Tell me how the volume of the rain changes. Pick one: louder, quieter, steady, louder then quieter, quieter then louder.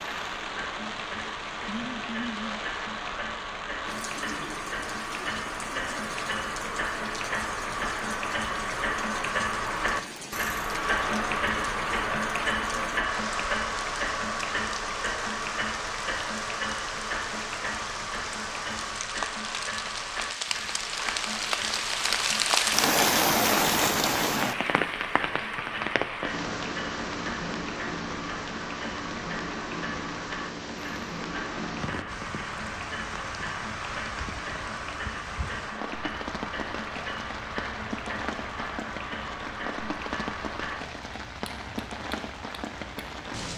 louder then quieter.